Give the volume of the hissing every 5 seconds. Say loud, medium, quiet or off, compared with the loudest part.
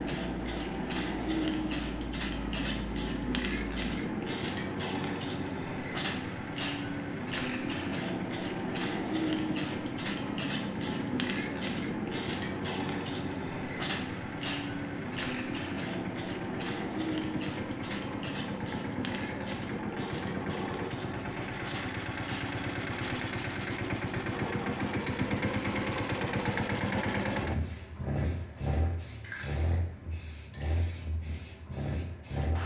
loud, loud, loud, loud, medium, quiet, quiet.